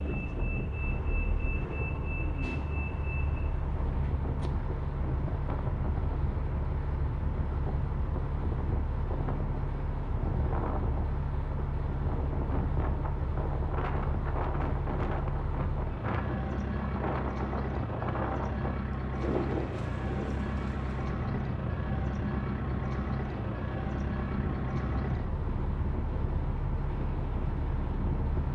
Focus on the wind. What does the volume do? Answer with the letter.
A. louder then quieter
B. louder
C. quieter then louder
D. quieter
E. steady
E.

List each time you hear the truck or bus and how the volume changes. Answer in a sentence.
You can hear the truck or bus from 0.0 to 28.4 s, at a steady volume.